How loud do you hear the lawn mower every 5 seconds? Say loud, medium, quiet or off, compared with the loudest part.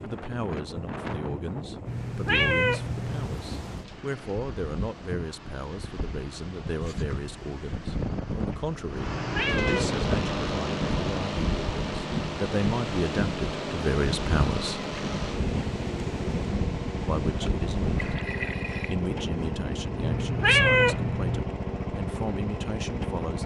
quiet, medium, loud, loud, loud.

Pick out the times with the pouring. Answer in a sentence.
The pouring can be heard from 17.9 to 19.0 s.